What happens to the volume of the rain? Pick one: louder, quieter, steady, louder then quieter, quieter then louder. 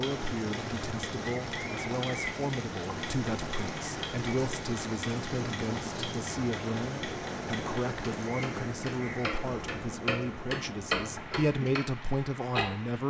quieter.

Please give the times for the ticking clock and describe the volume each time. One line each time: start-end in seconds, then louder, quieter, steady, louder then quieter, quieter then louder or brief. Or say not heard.
0.0-11.8 louder
12.5-13.0 brief.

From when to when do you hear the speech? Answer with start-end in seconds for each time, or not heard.
0.0-13.0.